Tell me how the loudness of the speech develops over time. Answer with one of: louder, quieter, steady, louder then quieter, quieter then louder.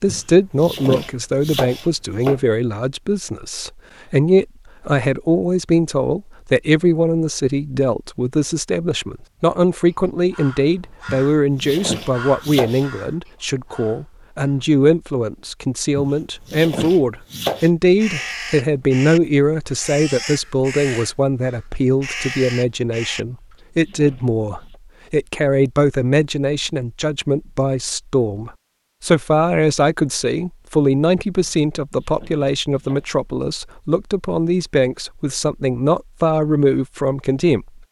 steady.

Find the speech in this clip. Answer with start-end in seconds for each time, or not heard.
0.0-37.7.